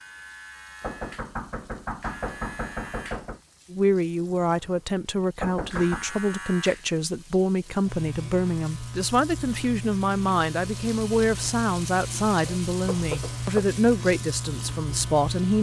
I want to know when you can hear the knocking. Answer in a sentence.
You can hear the knocking from 0.8 to 3.4 s, from 5.4 to 6.0 s and from 12.8 to 13.7 s.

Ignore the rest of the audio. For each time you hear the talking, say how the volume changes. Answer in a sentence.
The talking can be heard from 3.7 to 15.5 s, at a steady volume.